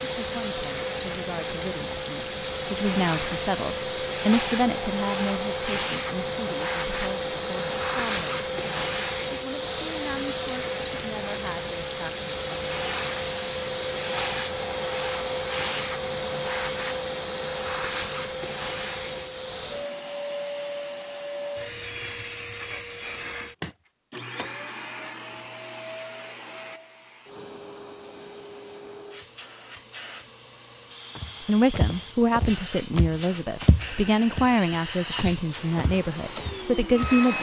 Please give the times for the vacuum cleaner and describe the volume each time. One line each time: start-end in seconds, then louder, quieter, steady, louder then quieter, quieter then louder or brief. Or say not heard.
0.0-37.3 quieter.